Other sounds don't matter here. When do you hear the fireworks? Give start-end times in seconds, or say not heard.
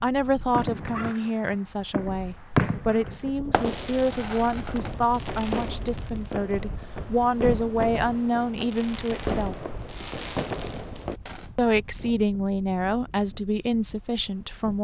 0.5-11.4.